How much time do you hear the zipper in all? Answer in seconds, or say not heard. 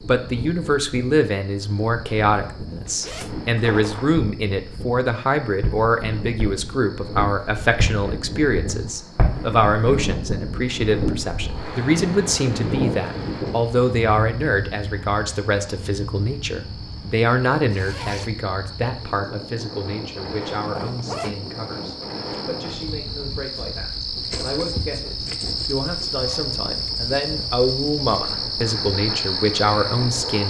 2 s.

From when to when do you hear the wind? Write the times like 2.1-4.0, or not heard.
0.0-30.4.